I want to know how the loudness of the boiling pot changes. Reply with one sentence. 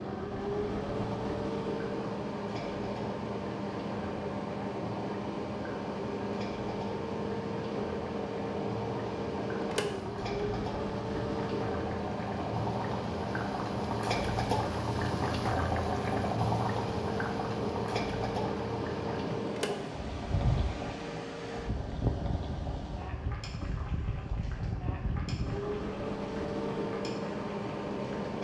The loudness of the boiling pot goes up, then down.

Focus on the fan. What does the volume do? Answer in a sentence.
The volume of the fan stays about the same.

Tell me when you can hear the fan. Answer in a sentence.
You can hear the fan from 0.0 to 28.3 s.